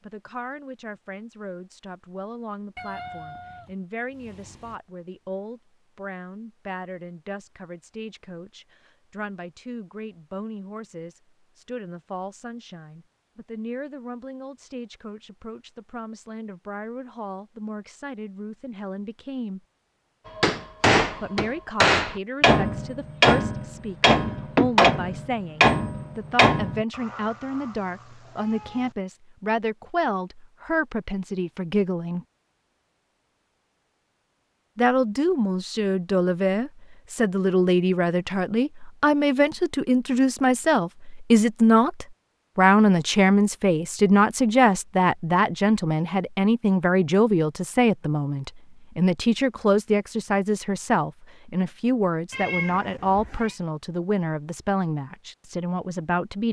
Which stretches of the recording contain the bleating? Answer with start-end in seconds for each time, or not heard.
not heard.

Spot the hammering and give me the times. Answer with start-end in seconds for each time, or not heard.
20.4-26.9.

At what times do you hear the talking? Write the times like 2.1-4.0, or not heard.
0.0-19.6, 21.2-32.2, 34.8-56.4.